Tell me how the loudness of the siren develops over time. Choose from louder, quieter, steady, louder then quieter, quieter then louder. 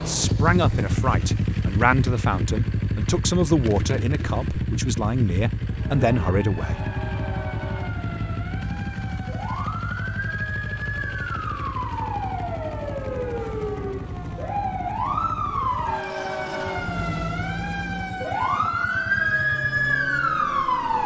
louder.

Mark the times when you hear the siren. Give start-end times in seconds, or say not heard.
5.7-21.0.